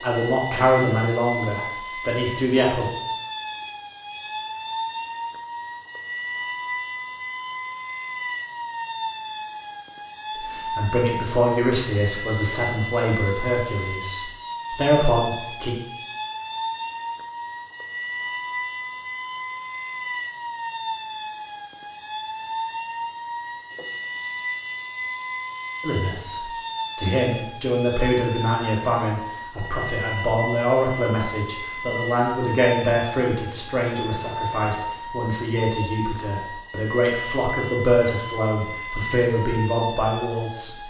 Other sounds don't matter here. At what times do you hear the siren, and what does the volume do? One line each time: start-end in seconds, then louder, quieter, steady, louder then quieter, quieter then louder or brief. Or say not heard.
0.0-40.8 steady.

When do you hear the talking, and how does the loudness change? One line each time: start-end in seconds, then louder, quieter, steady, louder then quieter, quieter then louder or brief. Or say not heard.
0.0-2.9 brief
10.4-15.8 quieter then louder
25.8-40.8 steady.